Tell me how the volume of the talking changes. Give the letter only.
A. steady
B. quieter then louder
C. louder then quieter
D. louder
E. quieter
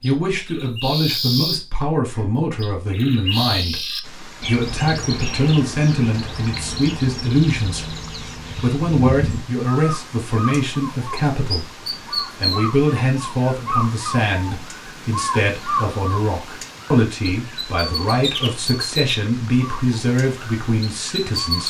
A.